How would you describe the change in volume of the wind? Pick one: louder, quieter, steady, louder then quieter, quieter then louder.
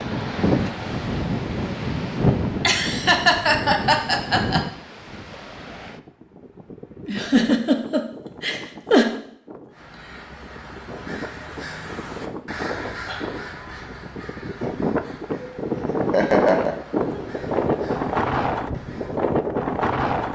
quieter then louder.